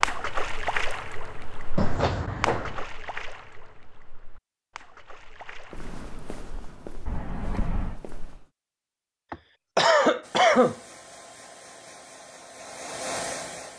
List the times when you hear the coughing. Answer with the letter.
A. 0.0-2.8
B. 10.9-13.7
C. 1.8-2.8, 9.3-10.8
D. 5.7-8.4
C.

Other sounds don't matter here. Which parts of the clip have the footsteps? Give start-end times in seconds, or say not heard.
5.7-8.4.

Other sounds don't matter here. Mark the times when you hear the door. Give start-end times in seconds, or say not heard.
7.0-8.0.